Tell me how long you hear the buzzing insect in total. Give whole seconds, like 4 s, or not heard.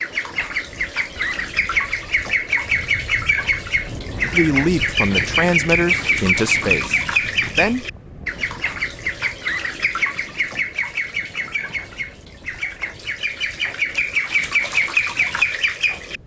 not heard.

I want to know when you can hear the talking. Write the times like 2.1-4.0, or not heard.
4.3-7.8.